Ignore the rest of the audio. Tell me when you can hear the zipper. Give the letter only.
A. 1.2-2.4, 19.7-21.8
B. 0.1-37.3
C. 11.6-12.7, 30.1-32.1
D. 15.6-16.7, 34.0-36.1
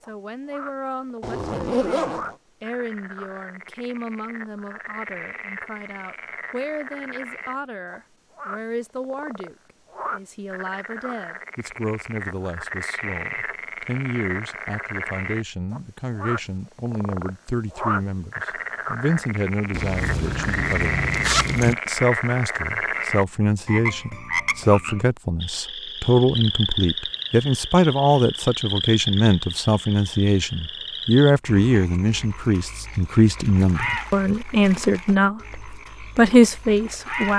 A.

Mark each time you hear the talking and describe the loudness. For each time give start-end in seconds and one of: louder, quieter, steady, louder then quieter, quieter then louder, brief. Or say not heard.
0.1-37.3 louder.